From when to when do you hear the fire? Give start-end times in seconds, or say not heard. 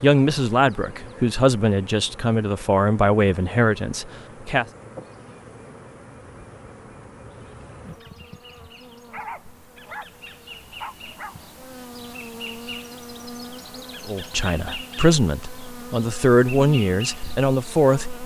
not heard.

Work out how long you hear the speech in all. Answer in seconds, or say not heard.
9 s.